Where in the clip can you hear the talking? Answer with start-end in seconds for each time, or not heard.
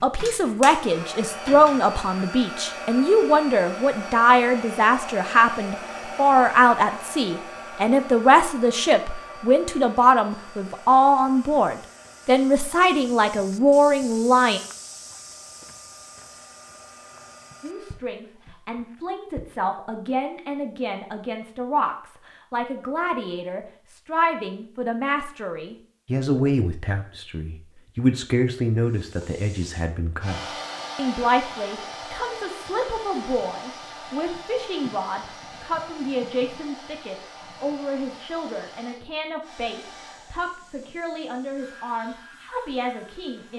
0.0-14.6, 17.6-43.5.